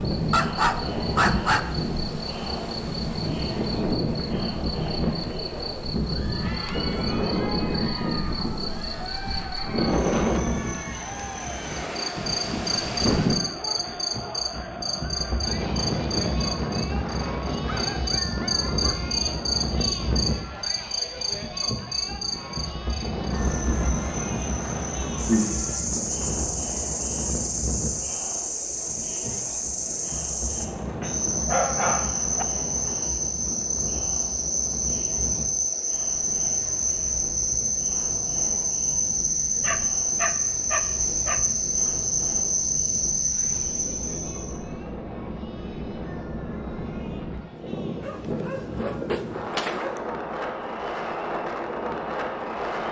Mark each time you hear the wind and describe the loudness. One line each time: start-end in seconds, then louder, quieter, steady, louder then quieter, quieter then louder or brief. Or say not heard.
0.0-52.8 quieter then louder.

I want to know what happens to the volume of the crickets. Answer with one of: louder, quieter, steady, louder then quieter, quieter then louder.
louder.